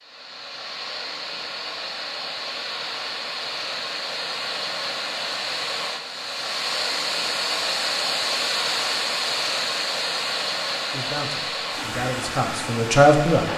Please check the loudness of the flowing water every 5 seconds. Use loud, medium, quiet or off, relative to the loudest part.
medium, loud, loud.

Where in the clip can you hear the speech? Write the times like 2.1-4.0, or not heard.
10.9-13.5.